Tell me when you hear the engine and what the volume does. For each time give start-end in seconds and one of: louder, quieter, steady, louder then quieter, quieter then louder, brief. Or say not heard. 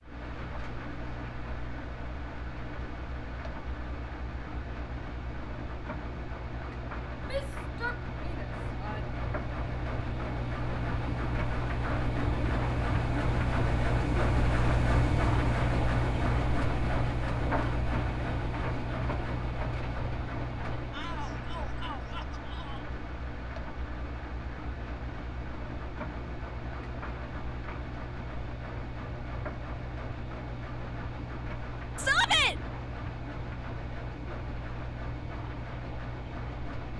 0.0-36.9 louder then quieter.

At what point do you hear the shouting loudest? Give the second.
32 s.